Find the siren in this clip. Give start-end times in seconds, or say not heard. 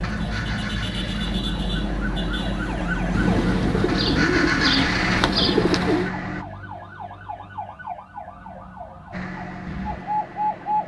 0.0-10.8.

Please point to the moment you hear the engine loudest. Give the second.
5 s.